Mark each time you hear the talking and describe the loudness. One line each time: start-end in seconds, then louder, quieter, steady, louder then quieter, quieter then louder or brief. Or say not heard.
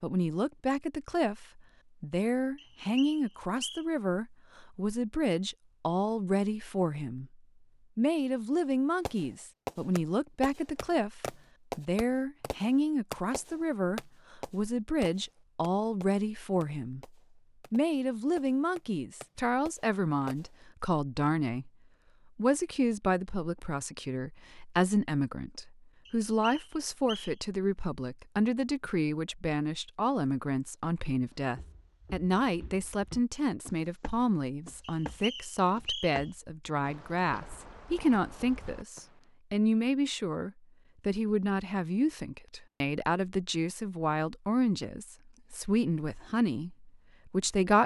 0.0-7.3 steady
8.0-17.1 steady
17.7-21.7 quieter then louder
22.4-47.8 steady.